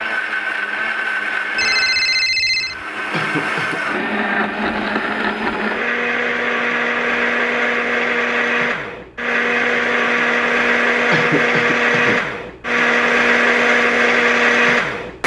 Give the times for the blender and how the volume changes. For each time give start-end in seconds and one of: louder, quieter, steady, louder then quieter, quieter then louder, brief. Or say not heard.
0.0-15.2 louder.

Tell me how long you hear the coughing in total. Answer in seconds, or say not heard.
2 s.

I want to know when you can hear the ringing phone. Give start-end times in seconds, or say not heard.
1.6-2.8.